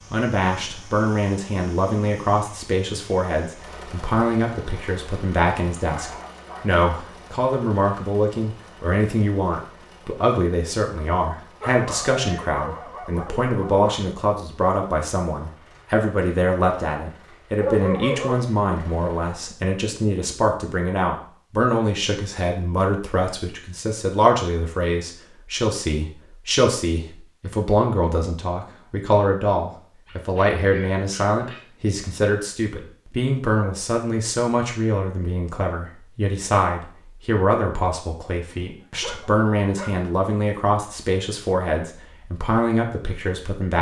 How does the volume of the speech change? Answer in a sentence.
The loudness of the speech stays about the same.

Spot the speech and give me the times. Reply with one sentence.
You can hear the speech from 0.1 to 43.7 s.